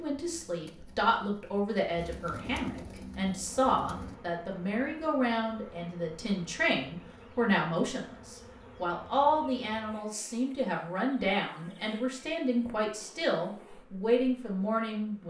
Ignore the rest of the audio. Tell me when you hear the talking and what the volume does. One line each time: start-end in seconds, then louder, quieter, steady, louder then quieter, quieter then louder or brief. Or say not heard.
0.0-15.2 steady.